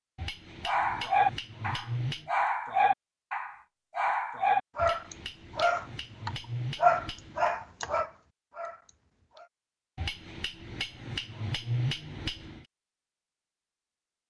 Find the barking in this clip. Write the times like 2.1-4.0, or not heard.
0.7-9.5.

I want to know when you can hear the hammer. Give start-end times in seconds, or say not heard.
0.1-2.3, 4.8-7.5, 9.9-12.7.